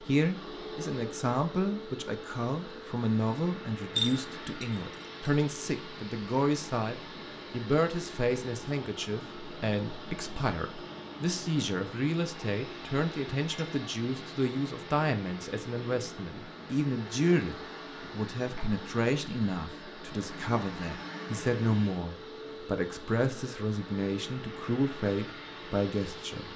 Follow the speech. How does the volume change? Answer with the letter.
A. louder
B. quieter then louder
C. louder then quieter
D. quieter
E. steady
E.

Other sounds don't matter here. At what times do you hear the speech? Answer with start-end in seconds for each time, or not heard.
0.0-26.5.